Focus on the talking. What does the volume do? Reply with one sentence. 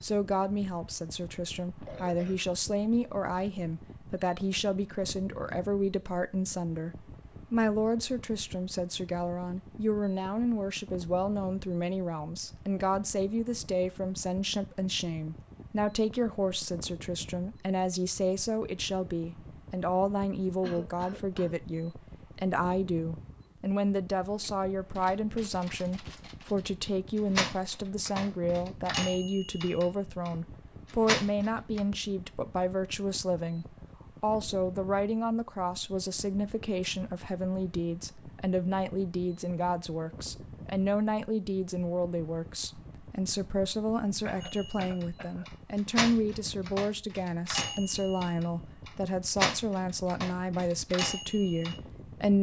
The volume of the talking stays about the same.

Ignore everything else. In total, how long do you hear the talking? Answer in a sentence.
You can hear the talking for 52 seconds altogether.